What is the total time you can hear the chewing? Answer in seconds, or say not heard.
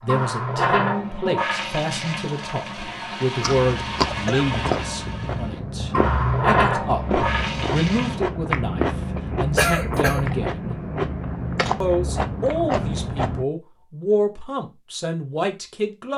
10 s.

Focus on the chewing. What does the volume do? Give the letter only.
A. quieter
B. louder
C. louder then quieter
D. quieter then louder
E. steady
E.